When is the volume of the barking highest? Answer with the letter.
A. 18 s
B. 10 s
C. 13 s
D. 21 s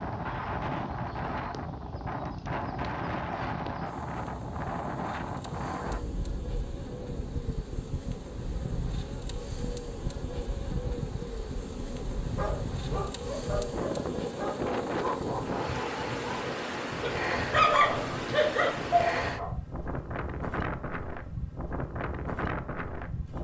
A.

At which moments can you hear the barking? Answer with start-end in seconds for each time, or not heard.
12.3-19.6.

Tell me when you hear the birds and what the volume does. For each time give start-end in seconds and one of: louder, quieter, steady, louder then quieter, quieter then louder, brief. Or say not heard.
not heard.